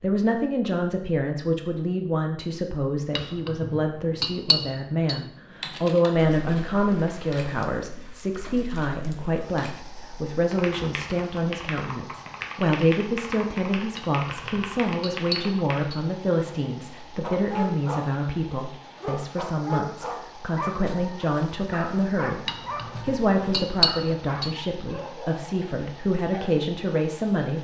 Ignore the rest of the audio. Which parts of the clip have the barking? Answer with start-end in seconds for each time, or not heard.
17.2-26.7.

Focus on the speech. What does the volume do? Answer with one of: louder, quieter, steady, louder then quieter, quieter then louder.
steady.